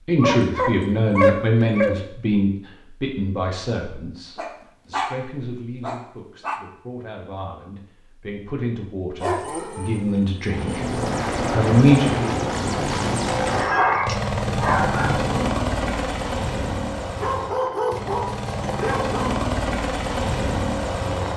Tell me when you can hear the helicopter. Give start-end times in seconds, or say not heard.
10.5-21.3.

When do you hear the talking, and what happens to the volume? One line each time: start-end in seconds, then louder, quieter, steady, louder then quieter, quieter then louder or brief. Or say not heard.
0.1-10.8 quieter then louder
11.5-12.4 brief.